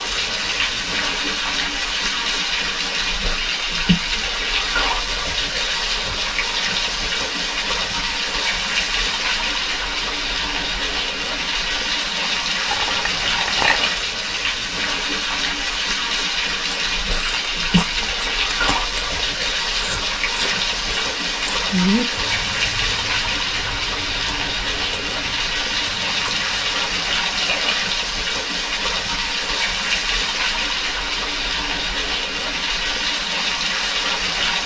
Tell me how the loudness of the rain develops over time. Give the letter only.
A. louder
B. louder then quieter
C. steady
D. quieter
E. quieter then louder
C.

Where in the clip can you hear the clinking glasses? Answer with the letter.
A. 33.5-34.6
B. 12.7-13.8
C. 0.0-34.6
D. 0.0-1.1
B.